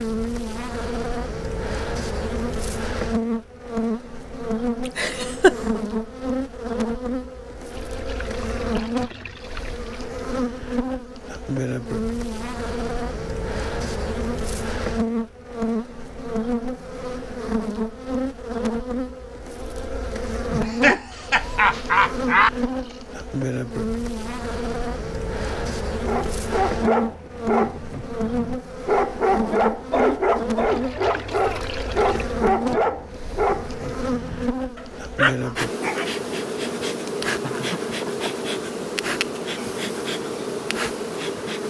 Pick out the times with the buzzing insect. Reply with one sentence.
The buzzing insect can be heard from 0.0 to 41.6 s.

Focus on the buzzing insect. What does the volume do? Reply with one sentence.
The loudness of the buzzing insect stays about the same.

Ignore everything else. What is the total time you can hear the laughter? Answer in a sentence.
You can hear the laughter for 4 seconds altogether.